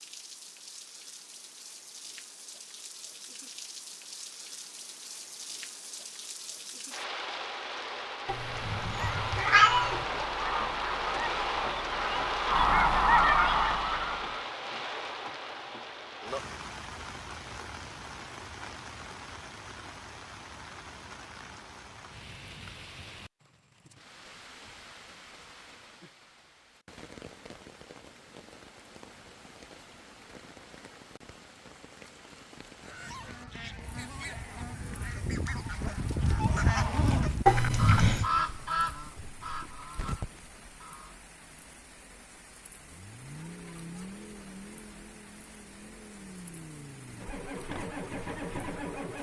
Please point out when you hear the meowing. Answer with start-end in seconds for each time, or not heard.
8.2-10.1, 37.5-38.3.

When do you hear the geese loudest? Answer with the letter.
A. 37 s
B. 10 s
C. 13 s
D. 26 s
C.